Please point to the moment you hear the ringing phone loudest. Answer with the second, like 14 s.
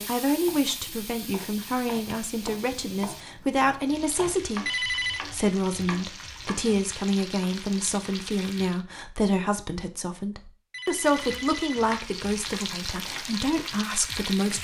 5 s.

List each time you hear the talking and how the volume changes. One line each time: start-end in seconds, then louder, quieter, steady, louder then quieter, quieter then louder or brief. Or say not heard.
0.1-14.5 steady.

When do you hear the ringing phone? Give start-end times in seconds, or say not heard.
4.7-5.2, 10.7-11.8.